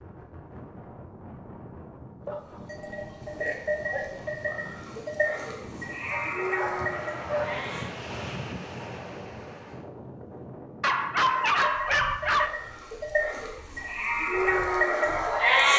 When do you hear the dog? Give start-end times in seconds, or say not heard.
2.2-2.9, 6.1-7.6, 10.8-12.5.